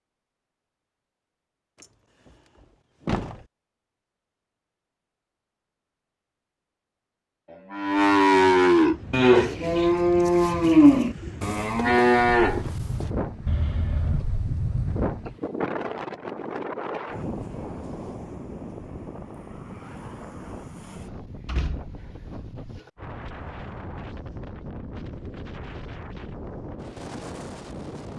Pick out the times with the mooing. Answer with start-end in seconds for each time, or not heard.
7.5-14.2.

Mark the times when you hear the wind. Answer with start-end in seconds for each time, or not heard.
8.8-28.1.